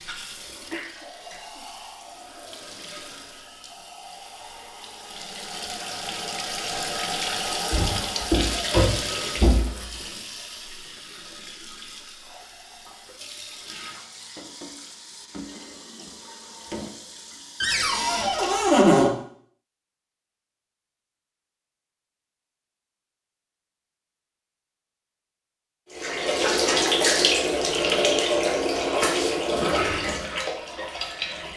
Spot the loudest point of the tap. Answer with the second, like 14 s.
27 s.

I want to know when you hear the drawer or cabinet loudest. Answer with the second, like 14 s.
19 s.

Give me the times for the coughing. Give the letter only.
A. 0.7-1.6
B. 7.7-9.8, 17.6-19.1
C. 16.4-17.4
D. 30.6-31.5
A.